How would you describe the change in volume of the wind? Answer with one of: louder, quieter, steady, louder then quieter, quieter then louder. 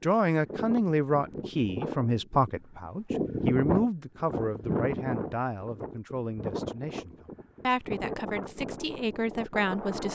louder then quieter.